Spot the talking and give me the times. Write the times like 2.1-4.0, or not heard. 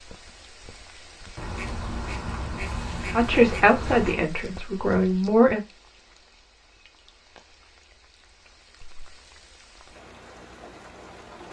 3.1-5.6.